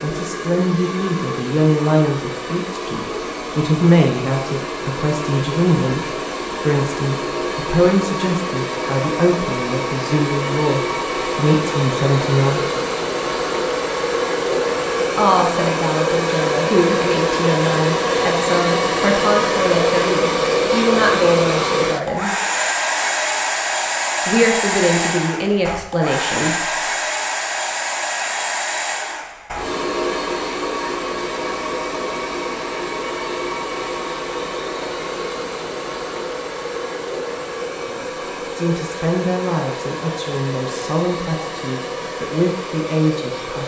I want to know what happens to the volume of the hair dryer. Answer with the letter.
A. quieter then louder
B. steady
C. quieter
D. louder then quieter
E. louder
D.